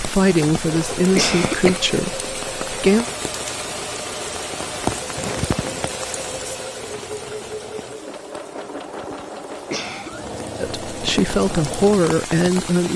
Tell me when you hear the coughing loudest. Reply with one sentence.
The volume of the coughing peaks at 1 second.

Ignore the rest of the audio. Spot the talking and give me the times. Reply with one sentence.
The talking can be heard from 0.0 to 3.0 s and from 10.6 to 12.9 s.